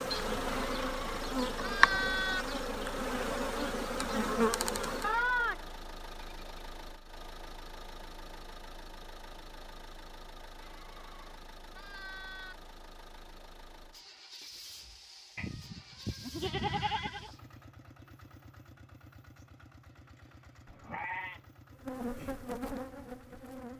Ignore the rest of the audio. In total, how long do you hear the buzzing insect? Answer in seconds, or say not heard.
7 s.